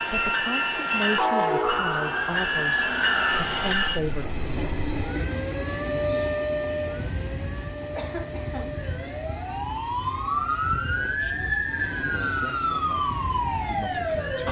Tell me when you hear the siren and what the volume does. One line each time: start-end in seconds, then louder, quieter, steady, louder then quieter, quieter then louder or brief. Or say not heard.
1.6-14.4 quieter then louder.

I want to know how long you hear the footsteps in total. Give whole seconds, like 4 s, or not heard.
not heard.